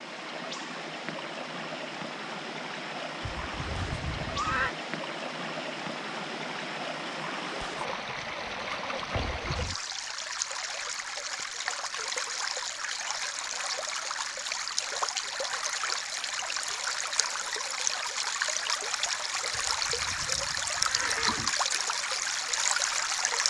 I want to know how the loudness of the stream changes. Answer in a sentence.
The volume of the stream goes up.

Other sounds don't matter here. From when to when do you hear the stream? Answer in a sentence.
The stream can be heard from 0.0 to 23.4 s.